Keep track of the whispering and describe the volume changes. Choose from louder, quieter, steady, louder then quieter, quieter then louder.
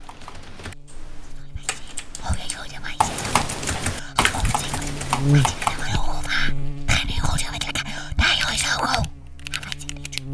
louder.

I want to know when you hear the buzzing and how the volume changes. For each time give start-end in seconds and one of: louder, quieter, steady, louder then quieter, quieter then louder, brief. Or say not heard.
0.0-10.2 louder then quieter.